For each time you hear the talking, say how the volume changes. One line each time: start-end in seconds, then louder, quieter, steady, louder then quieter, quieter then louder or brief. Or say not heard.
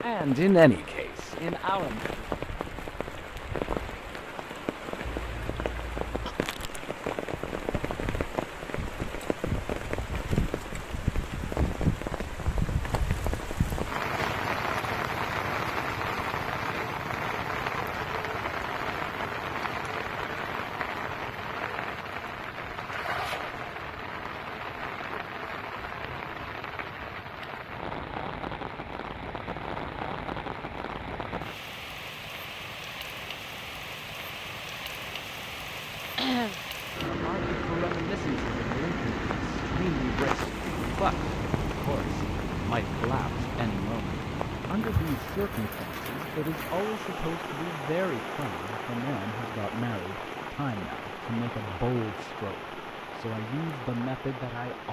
0.0-2.1 brief
37.0-54.8 steady.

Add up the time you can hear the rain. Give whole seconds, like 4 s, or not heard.
55 s.